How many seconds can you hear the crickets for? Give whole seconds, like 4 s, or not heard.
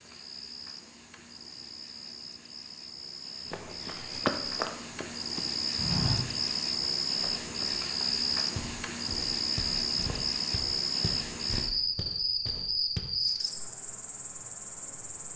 15 s.